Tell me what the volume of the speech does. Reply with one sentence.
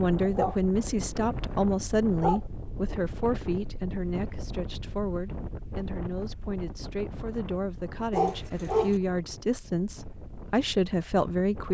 The loudness of the speech goes down, then up.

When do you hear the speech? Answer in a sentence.
You can hear the speech from 0.0 to 11.6 s.